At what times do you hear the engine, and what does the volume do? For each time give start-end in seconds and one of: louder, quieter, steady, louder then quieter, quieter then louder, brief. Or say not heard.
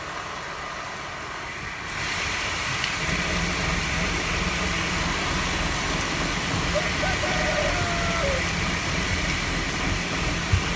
2.9-10.7 steady.